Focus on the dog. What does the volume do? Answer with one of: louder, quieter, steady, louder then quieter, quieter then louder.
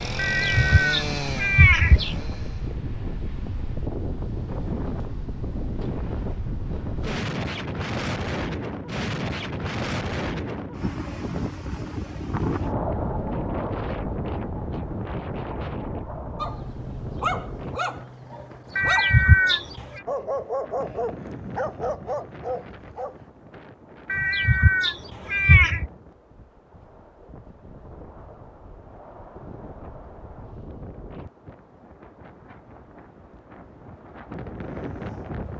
steady.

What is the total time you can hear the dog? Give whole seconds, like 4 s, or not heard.
7 s.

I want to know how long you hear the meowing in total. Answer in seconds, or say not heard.
5 s.